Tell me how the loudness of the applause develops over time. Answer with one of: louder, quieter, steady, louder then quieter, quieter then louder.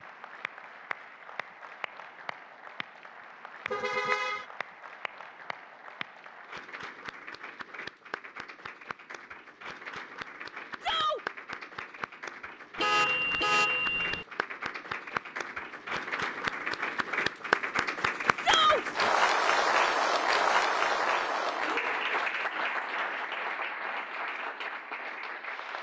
louder.